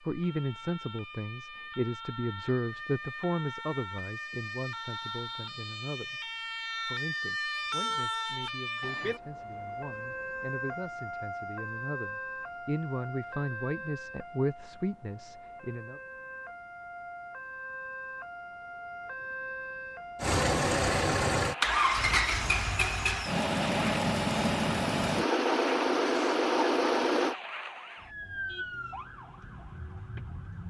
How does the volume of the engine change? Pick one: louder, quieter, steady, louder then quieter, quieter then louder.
steady.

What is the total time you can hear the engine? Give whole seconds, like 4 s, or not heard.
7 s.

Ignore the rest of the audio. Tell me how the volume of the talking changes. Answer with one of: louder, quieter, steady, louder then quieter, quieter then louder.
quieter then louder.